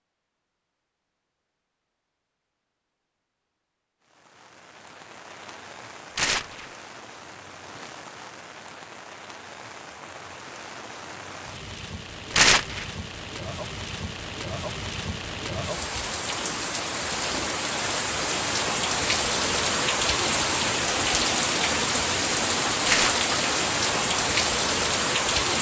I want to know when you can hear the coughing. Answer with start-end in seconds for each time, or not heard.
not heard.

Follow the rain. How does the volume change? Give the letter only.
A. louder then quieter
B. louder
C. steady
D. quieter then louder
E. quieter
B.